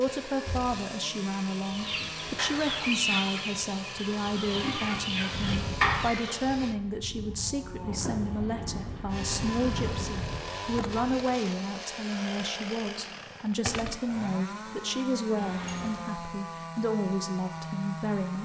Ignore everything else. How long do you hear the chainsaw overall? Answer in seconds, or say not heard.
16 s.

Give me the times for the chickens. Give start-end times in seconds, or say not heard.
1.6-6.5.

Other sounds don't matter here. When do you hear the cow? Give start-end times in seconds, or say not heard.
5.2-11.2.